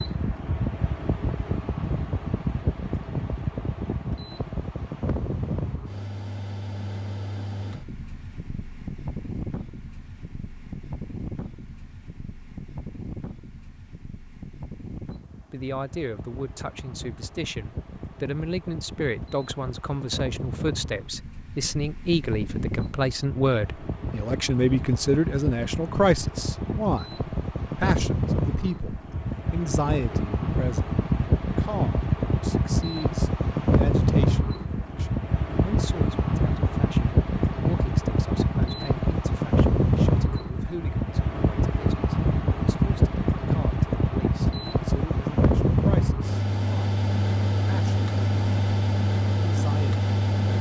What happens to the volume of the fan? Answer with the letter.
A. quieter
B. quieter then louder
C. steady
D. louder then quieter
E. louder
B.